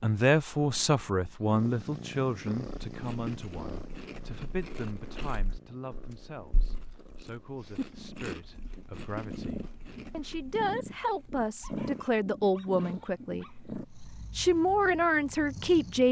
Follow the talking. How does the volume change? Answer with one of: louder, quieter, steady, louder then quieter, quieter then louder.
quieter then louder.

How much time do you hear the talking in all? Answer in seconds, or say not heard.
16 s.